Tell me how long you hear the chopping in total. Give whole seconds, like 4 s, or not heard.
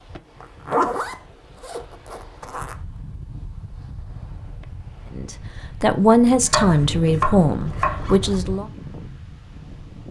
2 s.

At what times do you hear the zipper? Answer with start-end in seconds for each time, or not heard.
0.4-2.8, 6.8-8.6.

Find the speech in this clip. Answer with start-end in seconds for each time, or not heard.
5.1-8.7.